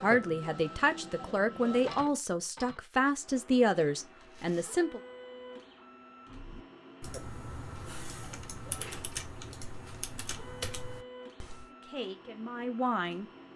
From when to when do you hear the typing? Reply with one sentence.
The typing can be heard from 6.2 to 11.7 s.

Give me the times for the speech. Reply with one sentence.
The speech can be heard from 0.0 to 5.0 s and from 11.7 to 13.2 s.